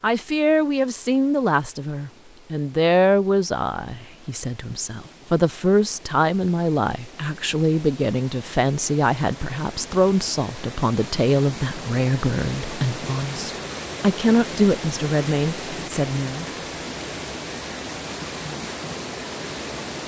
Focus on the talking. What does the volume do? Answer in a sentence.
The volume of the talking stays about the same.